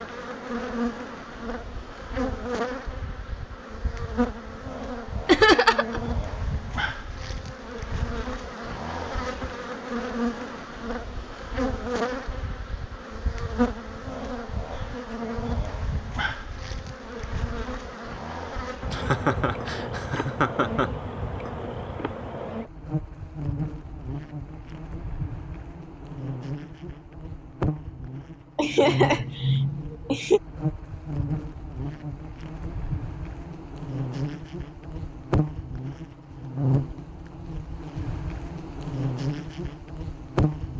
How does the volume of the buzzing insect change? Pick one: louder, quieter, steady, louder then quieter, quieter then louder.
steady.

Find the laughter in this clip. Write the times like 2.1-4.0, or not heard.
5.2-6.0, 18.9-20.9, 28.6-30.4.